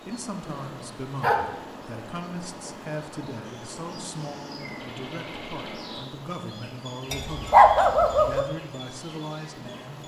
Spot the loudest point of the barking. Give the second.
8 s.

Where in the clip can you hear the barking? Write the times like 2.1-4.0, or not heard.
0.5-1.4, 7.1-8.4.